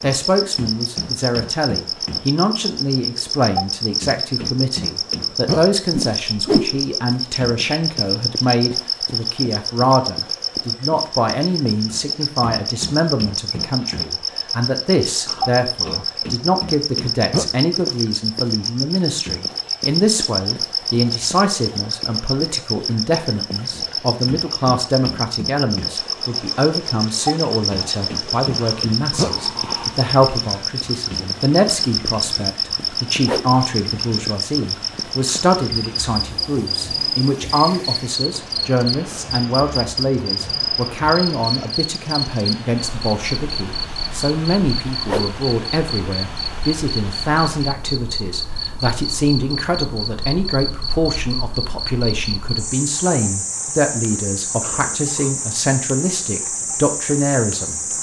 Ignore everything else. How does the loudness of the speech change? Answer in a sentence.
The loudness of the speech stays about the same.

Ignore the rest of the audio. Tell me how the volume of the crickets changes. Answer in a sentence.
The volume of the crickets stays about the same.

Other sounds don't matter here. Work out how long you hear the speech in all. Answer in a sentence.
The speech can be heard for 58 seconds in total.